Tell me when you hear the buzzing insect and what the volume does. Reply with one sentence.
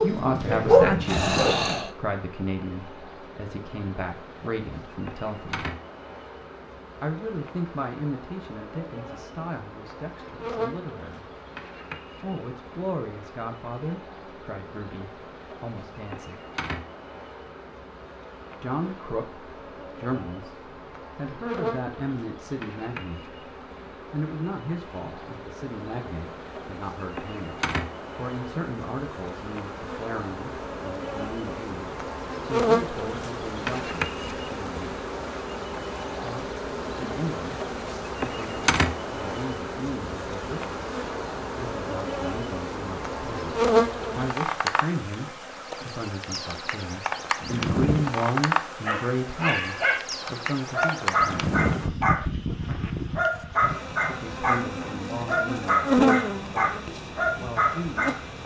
The buzzing insect can be heard from 0.0 to 58.4 s, getting louder.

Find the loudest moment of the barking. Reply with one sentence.
The volume of the barking peaks at 1 second.